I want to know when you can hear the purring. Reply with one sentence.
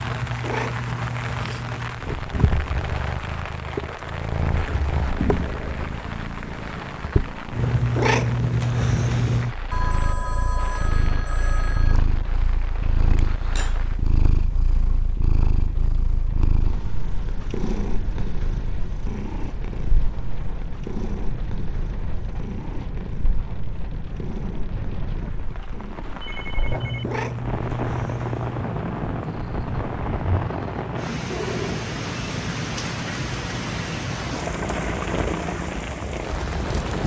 You can hear the purring from 0.0 to 37.0 s.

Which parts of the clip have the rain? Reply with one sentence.
You can hear the rain from 0.0 to 37.0 s.